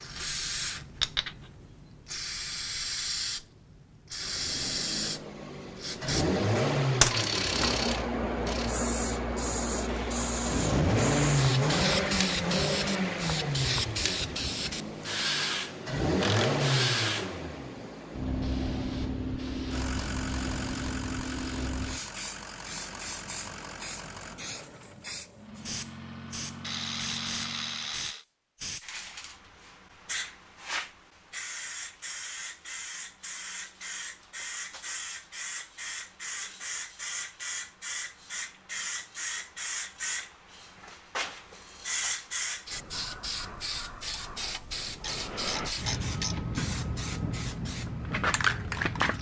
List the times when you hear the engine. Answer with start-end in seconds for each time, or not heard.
4.2-27.9.